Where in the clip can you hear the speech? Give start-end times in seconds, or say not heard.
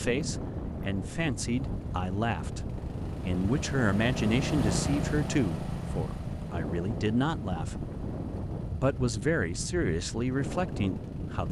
0.0-7.9, 8.8-11.4.